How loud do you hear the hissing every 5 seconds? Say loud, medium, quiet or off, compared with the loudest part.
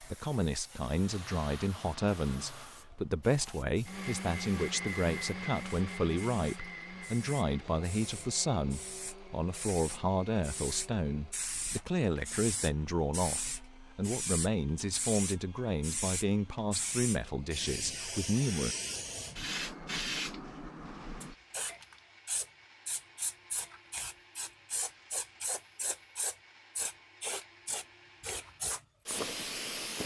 quiet, medium, loud, loud, loud, loud.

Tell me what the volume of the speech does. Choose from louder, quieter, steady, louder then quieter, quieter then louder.
steady.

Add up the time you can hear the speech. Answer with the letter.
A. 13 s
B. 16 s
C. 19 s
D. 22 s
C.